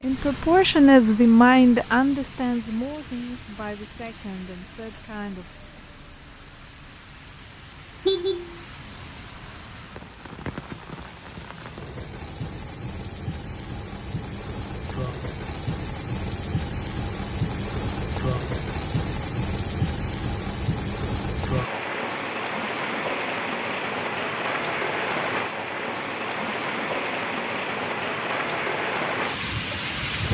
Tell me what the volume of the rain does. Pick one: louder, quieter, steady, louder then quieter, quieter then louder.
louder.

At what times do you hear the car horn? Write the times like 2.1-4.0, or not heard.
8.1-8.5.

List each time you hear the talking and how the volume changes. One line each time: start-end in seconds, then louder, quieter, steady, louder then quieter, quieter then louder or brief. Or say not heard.
0.0-5.5 quieter.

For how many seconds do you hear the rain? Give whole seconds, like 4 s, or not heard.
30 s.